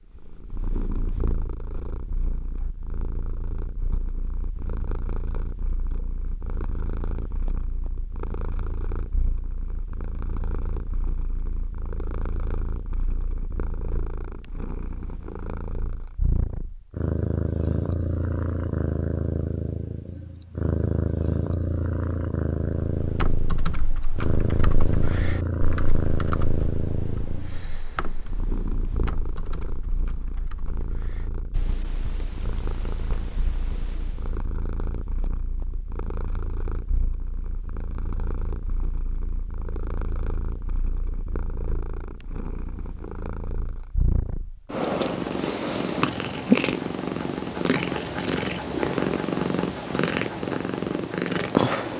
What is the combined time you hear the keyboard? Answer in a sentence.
You can hear the keyboard for 12 seconds altogether.